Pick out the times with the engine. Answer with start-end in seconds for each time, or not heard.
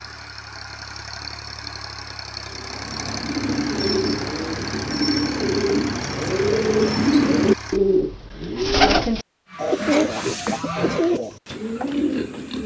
0.0-7.8.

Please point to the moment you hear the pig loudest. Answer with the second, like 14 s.
10 s.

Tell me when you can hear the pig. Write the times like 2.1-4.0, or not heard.
9.4-12.6.